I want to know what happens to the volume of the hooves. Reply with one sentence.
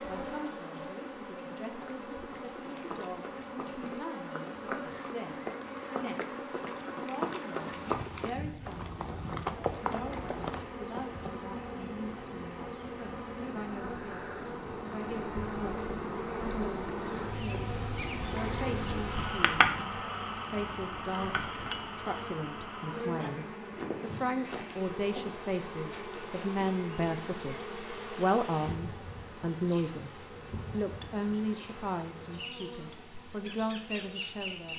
The volume of the hooves goes up.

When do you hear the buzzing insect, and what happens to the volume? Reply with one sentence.
You can hear the buzzing insect from 0.0 to 34.7 s, getting louder then quieter.